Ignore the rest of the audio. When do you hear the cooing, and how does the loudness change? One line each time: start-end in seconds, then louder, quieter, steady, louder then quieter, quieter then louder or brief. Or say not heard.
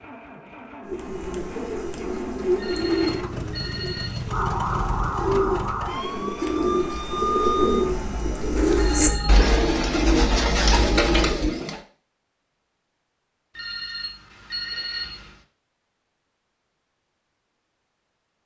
0.8-11.8 quieter then louder.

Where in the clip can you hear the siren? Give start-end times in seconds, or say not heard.
4.2-11.3.